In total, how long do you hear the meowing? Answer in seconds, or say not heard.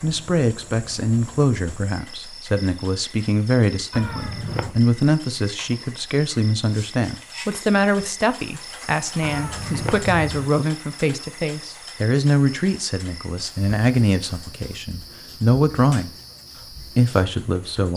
2 s.